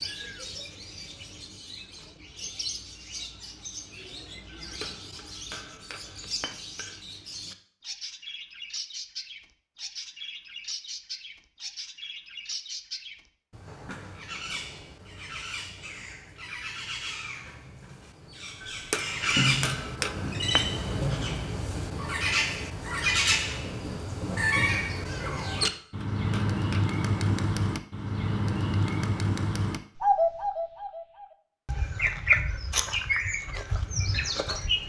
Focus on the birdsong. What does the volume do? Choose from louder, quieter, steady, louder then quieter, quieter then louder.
louder.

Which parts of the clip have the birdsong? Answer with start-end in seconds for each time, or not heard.
0.0-34.8.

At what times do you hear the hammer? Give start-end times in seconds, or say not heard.
4.6-7.0, 18.6-20.7, 25.5-26.9.